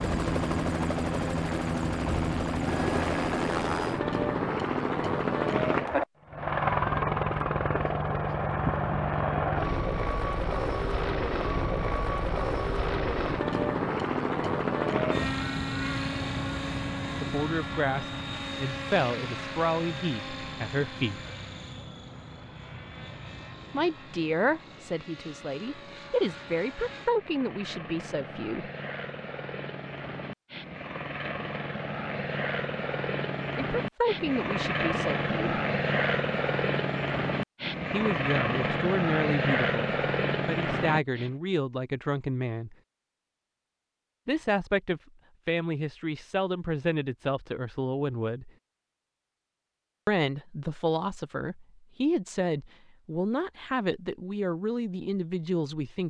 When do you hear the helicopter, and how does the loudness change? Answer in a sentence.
You can hear the helicopter from 0.0 to 41.3 s, getting quieter then louder.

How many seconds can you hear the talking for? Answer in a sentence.
The talking can be heard for 26 seconds in total.